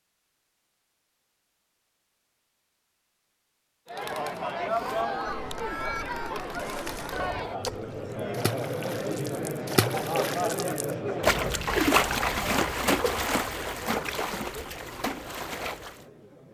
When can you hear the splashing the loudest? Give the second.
12 s.